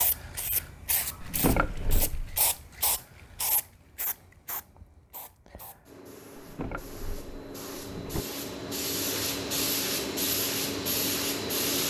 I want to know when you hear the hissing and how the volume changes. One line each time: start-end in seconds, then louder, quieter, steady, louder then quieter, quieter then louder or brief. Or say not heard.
0.0-11.8 quieter then louder.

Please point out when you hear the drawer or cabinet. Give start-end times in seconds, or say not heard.
1.2-2.4, 6.3-8.2.